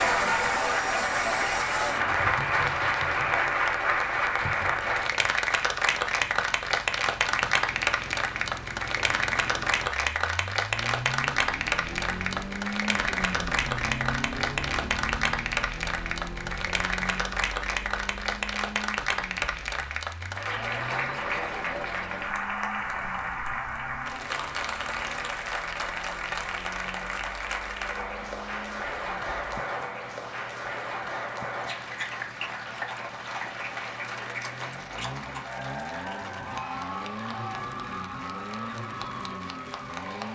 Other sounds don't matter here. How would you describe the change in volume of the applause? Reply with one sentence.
The loudness of the applause goes down.